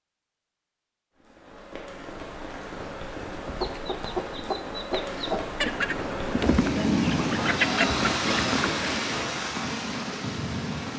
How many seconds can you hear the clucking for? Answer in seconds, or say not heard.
5 s.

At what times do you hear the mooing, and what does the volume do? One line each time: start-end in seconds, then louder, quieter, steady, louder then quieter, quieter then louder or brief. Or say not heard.
not heard.